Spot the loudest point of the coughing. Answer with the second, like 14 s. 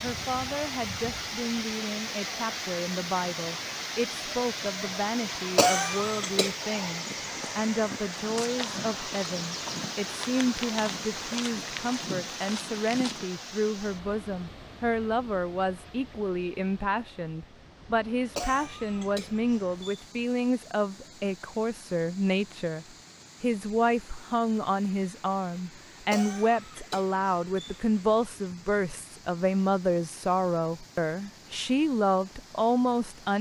6 s.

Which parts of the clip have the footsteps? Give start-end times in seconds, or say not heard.
7.0-13.2.